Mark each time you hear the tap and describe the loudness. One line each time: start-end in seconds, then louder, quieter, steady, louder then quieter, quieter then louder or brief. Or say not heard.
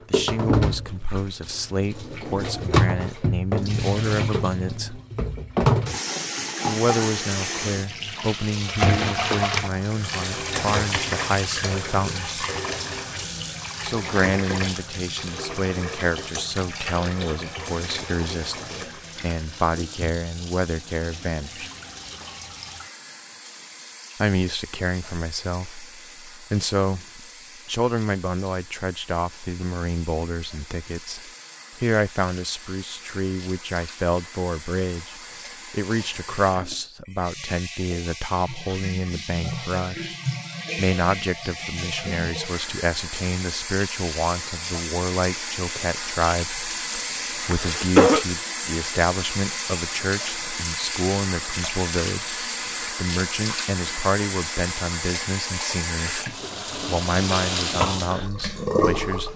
0.0-59.3 quieter then louder.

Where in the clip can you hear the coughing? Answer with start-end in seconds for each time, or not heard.
47.5-48.2.